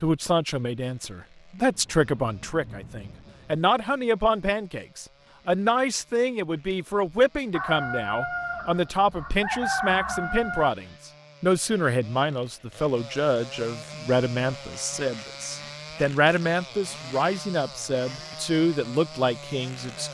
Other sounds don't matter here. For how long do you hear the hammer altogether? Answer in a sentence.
You can't hear the hammer here.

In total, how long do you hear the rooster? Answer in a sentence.
The rooster can be heard for 3 seconds in total.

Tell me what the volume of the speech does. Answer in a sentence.
The loudness of the speech stays about the same.